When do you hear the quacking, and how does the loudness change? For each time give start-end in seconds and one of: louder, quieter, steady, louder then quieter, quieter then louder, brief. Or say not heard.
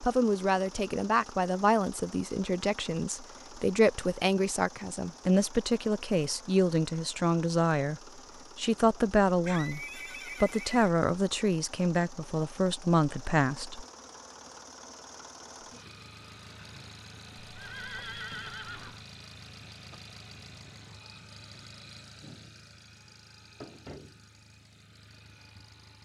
not heard.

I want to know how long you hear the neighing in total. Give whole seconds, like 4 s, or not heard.
3 s.